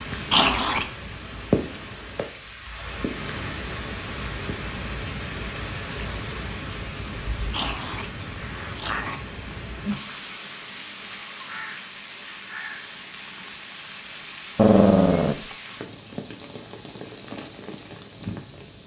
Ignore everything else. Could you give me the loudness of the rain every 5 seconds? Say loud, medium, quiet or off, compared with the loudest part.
loud, loud, medium, medium.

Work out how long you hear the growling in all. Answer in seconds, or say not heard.
3 s.